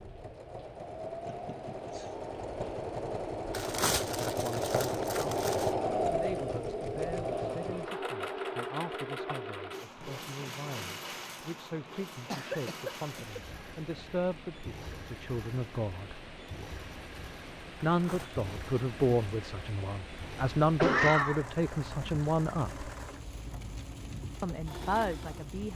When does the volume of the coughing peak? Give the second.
21 s.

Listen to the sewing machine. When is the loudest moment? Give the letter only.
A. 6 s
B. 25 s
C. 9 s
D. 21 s
A.